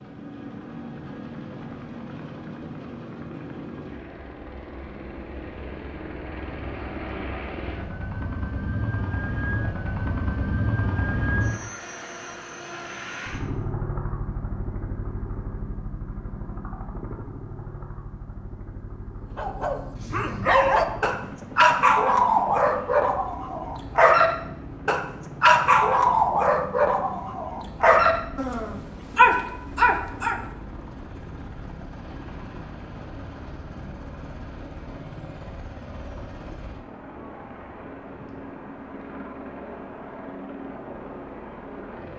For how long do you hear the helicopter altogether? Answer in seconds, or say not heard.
42 s.